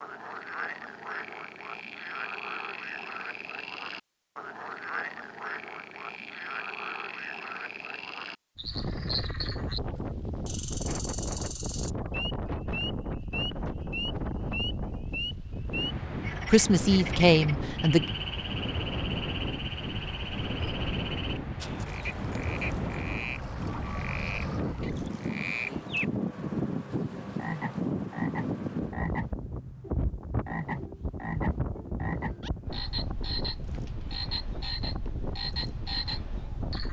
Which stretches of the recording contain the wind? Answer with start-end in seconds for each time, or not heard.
8.6-36.8.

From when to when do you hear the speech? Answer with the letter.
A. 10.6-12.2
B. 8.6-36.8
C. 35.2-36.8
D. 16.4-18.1
D.